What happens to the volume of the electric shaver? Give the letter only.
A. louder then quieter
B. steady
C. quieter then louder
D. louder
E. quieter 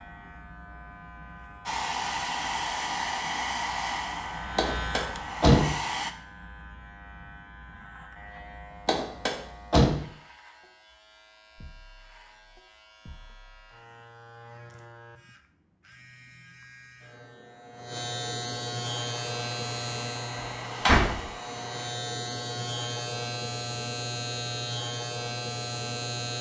C.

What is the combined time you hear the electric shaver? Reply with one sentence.
You can hear the electric shaver for 26 seconds altogether.